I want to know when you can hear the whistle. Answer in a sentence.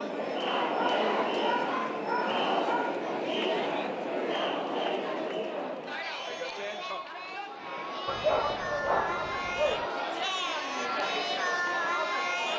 The whistle can't be heard in this clip.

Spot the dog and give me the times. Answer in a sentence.
You can hear the dog from 0.5 to 3.1 s and from 8.1 to 9.9 s.